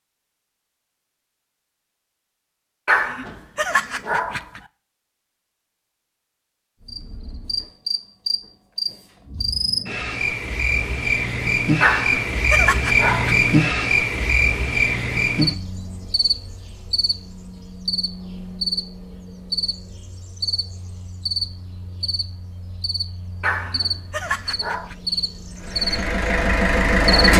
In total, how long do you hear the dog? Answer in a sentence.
You can hear the dog for 5 seconds altogether.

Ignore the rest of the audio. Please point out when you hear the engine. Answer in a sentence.
The engine can be heard from 25.5 to 27.3 s.